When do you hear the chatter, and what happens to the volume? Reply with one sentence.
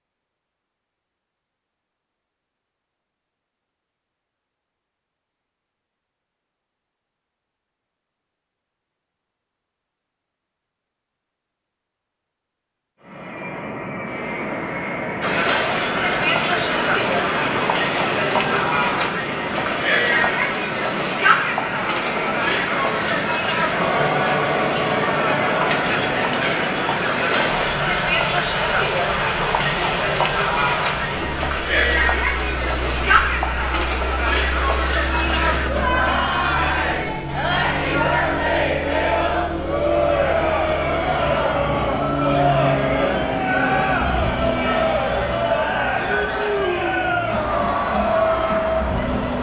The chatter can be heard from 15.2 to 49.3 s, at a steady volume.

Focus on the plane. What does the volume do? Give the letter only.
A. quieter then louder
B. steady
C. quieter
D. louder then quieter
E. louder
B.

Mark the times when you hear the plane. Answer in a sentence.
The plane can be heard from 13.0 to 49.3 s.